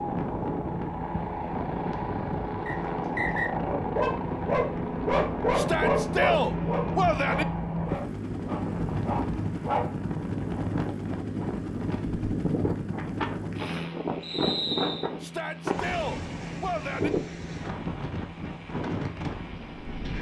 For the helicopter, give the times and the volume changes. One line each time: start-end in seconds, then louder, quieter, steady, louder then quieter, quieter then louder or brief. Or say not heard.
0.0-20.1 quieter.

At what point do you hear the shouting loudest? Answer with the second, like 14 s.
6 s.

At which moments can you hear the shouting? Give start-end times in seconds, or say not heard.
5.5-7.5, 15.2-17.1.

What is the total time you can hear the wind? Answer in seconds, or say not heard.
20 s.